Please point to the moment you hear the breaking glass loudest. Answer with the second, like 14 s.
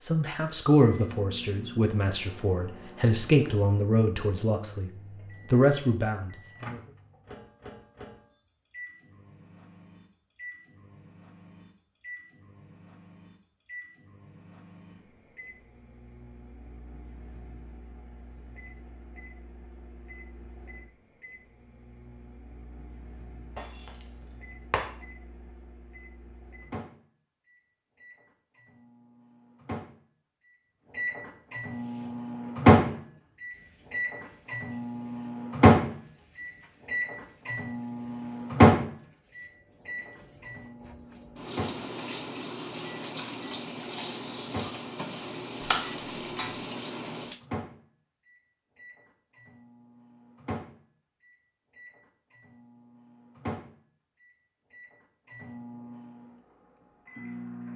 46 s.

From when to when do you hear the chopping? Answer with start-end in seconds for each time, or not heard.
not heard.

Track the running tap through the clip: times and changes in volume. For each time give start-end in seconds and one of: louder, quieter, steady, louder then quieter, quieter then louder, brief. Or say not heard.
31.6-47.5 louder.